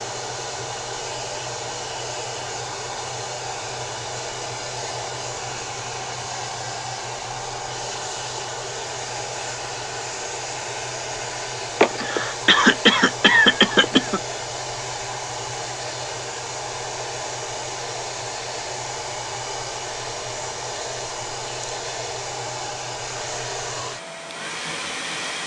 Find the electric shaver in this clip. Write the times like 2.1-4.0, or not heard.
not heard.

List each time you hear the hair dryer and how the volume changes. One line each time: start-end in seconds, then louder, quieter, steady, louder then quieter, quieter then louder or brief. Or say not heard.
0.0-25.4 steady.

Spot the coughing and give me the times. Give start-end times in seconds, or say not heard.
11.8-14.2.